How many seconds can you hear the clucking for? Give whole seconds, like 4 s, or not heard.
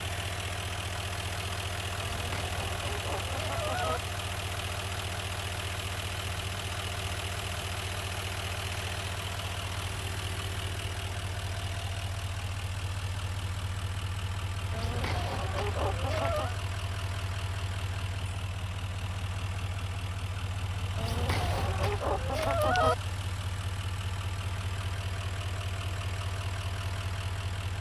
6 s.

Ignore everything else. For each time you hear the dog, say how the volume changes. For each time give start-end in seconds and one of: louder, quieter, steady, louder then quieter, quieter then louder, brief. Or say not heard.
not heard.